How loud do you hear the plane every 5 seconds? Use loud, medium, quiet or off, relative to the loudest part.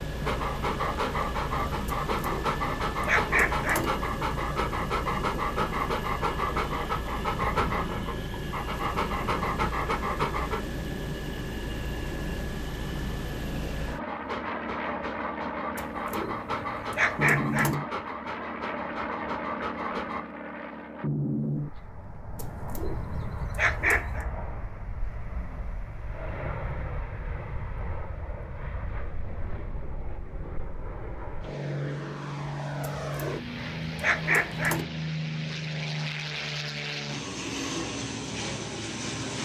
loud, loud, loud, loud, loud, medium, loud, loud.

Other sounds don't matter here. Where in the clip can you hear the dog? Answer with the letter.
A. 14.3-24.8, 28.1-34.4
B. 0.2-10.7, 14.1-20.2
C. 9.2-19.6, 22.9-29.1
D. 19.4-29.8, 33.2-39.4
B.